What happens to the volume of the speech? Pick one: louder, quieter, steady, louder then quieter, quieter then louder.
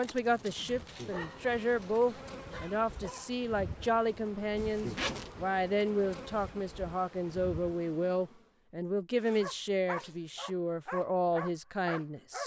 steady.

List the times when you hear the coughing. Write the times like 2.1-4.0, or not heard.
not heard.